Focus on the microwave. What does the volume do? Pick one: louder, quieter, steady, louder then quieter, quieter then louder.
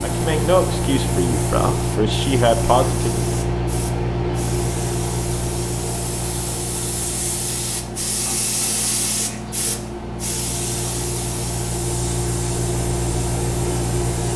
quieter then louder.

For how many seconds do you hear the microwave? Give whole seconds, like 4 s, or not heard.
14 s.